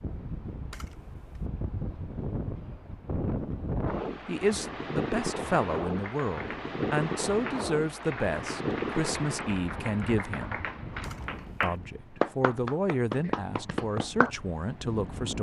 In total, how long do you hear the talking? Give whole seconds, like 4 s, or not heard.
10 s.